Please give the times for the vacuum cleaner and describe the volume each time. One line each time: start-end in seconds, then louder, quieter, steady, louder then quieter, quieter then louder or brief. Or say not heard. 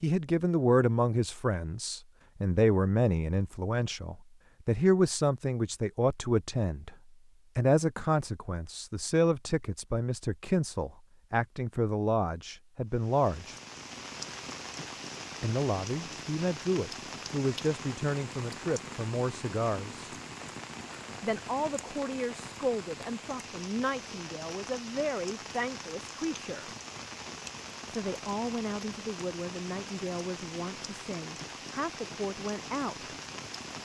not heard.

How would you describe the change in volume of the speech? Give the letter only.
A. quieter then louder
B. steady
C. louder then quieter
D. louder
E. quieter
E.